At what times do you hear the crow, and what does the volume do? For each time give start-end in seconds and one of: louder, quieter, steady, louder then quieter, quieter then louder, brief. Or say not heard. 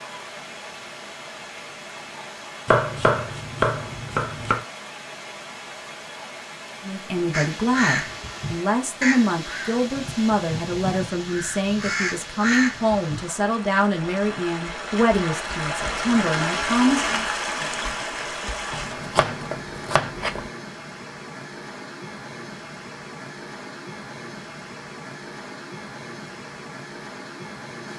7.3-13.3 quieter then louder.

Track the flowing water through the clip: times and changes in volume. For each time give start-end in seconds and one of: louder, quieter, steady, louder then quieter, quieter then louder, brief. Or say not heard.
0.0-27.9 louder then quieter.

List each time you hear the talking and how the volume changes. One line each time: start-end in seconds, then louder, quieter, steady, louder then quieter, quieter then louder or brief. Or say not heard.
6.8-17.2 steady.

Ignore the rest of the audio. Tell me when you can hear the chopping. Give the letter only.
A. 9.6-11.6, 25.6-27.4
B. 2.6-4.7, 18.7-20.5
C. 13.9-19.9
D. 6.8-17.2
B.